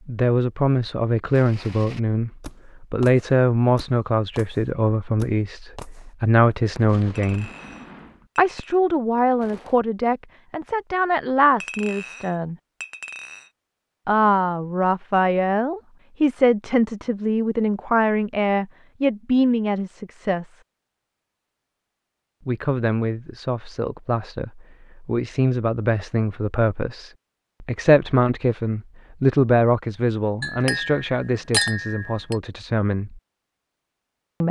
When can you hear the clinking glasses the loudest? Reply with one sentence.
The loudest moment of the clinking glasses is at 32 seconds.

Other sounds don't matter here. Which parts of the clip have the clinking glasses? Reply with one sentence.
You can hear the clinking glasses from 7.2 to 8.8 s, from 11.6 to 13.5 s and from 30.4 to 32.4 s.